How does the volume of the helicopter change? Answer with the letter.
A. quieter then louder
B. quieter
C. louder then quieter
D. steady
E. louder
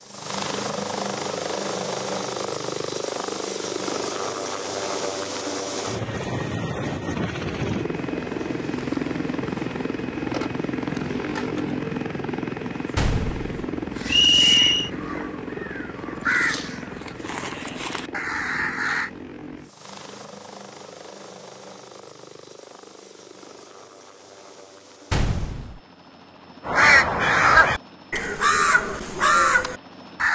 B.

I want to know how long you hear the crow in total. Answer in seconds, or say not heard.
9 s.